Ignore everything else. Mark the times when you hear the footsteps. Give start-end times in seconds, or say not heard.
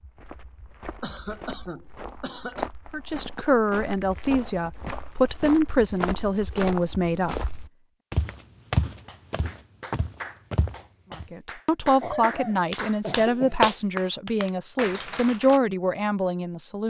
0.0-11.3.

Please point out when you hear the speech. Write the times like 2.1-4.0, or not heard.
2.9-7.5, 11.3-16.8.